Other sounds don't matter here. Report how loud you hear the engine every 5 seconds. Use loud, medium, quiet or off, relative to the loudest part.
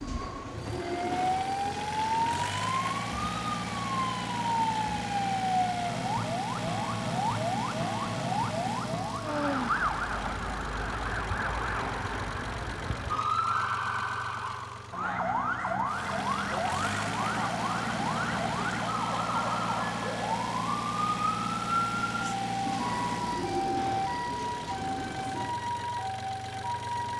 loud, loud, medium, loud, loud, medium.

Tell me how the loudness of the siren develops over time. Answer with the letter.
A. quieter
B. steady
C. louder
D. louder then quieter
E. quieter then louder
B.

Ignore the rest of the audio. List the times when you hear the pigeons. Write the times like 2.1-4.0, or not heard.
0.0-2.5, 22.6-25.5.